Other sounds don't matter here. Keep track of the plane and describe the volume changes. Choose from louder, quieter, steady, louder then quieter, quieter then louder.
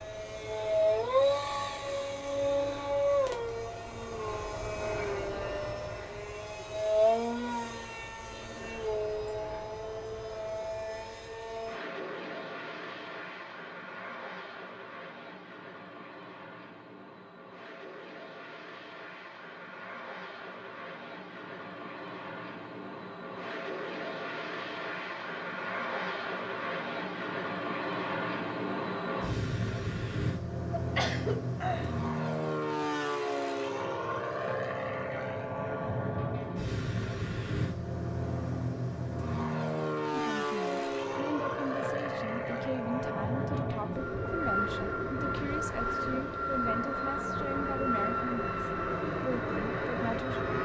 quieter then louder.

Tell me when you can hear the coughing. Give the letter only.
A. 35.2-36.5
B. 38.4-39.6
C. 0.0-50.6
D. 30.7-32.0
D.